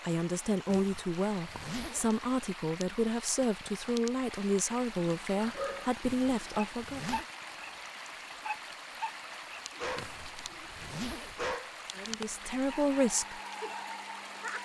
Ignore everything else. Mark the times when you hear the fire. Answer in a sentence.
The fire can't be heard in this clip.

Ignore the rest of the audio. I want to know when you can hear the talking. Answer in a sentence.
You can hear the talking from 0.0 to 7.0 s and from 11.9 to 13.4 s.